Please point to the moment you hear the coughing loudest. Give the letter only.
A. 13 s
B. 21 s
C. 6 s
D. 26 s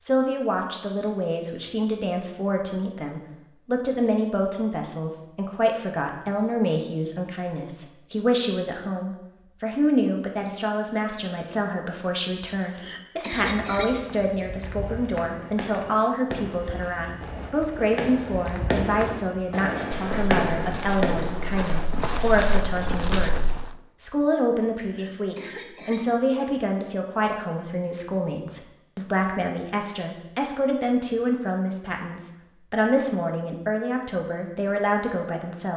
A.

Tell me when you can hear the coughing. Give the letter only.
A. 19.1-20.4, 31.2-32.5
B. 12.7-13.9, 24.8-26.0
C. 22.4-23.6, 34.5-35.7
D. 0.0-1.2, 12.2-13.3
B.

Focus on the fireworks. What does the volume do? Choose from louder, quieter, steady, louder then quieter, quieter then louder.
louder then quieter.